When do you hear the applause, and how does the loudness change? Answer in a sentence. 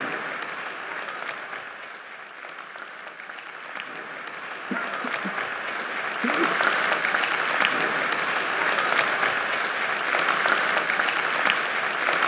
You can hear the applause from 0.0 to 12.2 s, getting louder.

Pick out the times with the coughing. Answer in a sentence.
The coughing can be heard from 4.7 to 6.7 s.